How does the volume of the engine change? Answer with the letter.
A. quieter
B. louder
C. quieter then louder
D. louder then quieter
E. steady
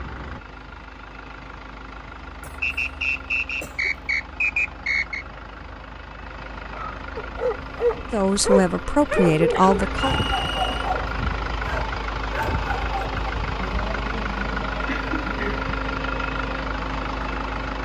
B.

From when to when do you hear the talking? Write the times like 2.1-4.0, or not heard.
8.1-10.2.